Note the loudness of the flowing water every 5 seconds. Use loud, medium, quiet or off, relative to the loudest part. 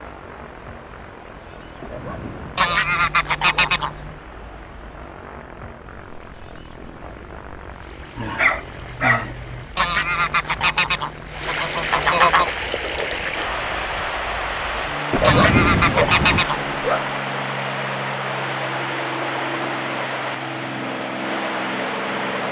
quiet, quiet, loud, loud, loud.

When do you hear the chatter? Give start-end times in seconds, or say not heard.
not heard.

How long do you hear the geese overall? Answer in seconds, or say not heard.
6 s.